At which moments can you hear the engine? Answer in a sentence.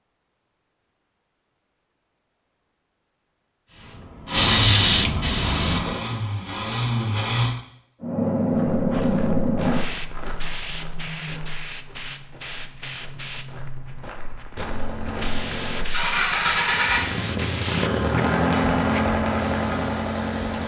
The engine can be heard from 4.2 to 7.5 s and from 14.6 to 20.6 s.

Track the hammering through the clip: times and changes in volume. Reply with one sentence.
The hammering can't be heard in this clip.